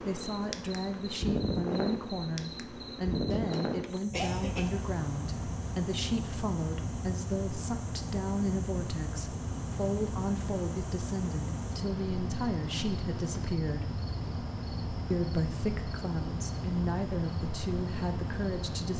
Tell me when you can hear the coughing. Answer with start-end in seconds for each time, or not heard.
3.3-4.8.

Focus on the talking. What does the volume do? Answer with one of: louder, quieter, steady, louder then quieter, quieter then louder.
steady.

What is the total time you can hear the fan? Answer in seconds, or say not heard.
19 s.